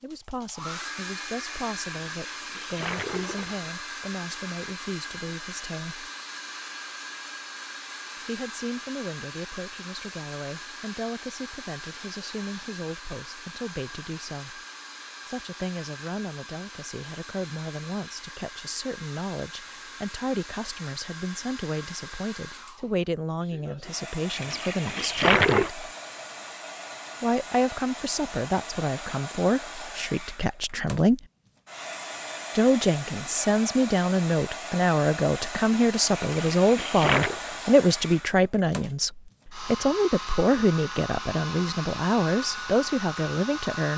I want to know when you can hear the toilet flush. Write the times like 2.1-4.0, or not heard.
2.1-3.7, 24.3-25.7, 36.1-37.4.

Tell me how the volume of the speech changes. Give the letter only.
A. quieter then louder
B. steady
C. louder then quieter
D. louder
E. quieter
D.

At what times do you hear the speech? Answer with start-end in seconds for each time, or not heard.
0.0-6.1, 8.2-14.6, 15.2-25.8, 27.2-31.2, 32.5-43.9.